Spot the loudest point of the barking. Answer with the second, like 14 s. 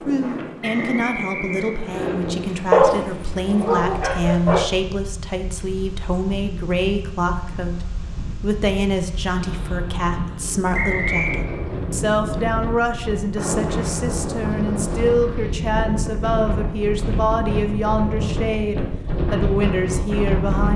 3 s.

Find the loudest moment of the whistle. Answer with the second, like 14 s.
11 s.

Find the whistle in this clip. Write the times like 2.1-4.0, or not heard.
0.6-2.1, 10.7-11.4.